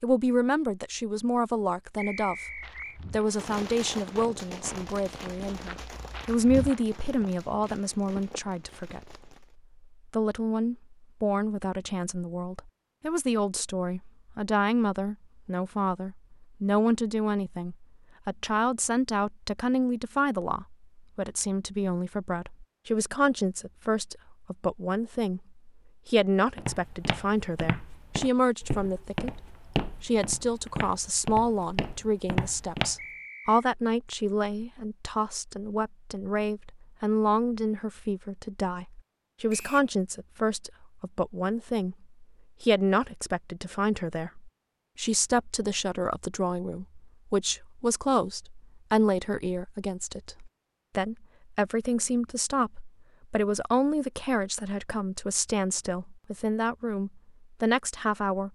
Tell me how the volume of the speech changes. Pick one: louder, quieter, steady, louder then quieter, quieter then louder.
steady.